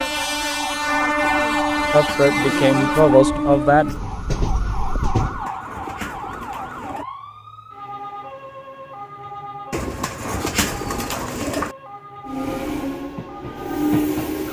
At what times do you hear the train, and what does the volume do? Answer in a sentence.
The train can be heard from 0.0 to 5.5 s, getting quieter; and briefly from 12.2 to 14.4 s.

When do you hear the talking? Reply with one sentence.
You can hear the talking from 1.9 to 4.0 s.